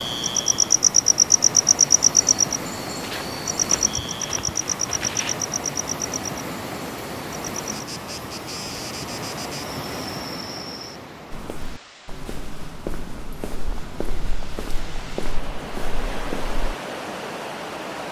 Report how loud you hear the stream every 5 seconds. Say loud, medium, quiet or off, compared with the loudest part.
loud, loud, medium, loud.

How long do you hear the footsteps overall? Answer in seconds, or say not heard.
8 s.